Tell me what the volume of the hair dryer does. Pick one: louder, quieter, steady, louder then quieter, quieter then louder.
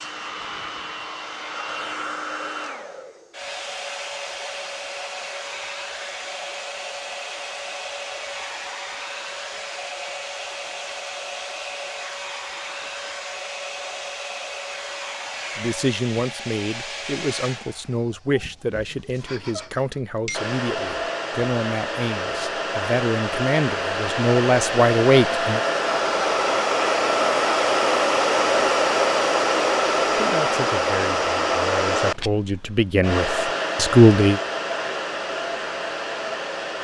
louder.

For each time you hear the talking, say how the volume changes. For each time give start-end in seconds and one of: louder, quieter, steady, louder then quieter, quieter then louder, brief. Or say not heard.
15.6-25.6 louder
30.1-34.4 louder.